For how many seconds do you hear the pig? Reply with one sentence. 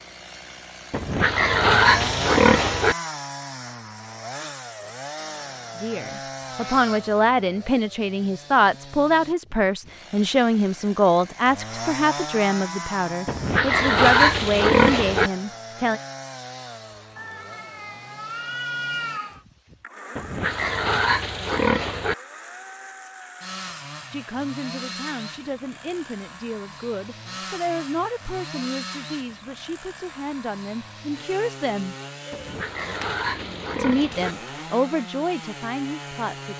You can hear the pig for 8 seconds altogether.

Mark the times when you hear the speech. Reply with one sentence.
The speech can be heard from 5.8 to 16.0 s, from 24.1 to 31.9 s and from 33.8 to 36.5 s.